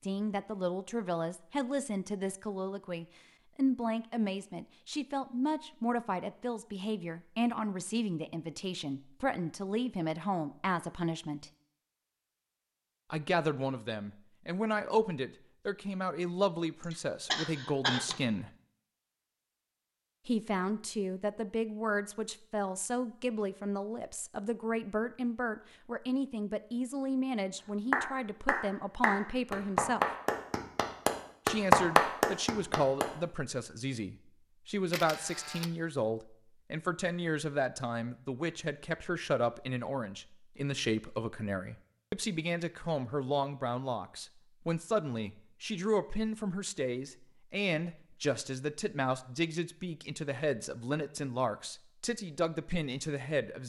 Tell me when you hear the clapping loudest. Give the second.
32 s.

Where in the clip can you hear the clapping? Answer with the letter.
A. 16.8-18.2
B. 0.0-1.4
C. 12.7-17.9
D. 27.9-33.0
D.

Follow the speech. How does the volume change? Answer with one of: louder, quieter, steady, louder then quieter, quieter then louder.
steady.